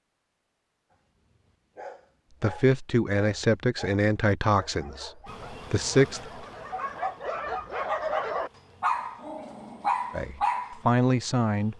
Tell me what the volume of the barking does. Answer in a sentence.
The loudness of the barking goes up.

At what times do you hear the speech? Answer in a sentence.
You can hear the speech from 2.4 to 6.3 s and from 10.1 to 11.7 s.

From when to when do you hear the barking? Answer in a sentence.
The barking can be heard from 0.9 to 10.8 s.